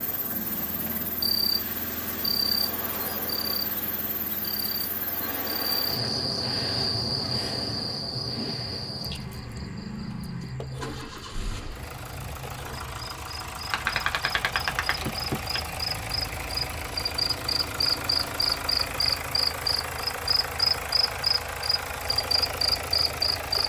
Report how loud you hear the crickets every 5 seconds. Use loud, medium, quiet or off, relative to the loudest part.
medium, medium, quiet, loud, loud.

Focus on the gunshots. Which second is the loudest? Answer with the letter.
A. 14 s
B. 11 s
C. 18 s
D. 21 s
A.